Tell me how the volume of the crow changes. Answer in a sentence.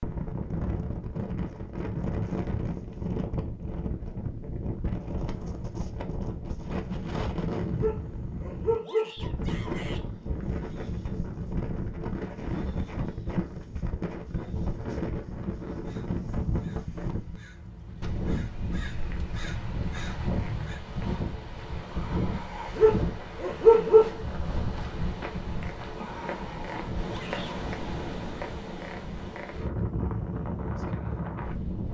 The volume of the crow goes up.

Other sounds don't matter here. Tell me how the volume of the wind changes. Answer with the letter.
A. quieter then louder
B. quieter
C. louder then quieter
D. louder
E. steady
E.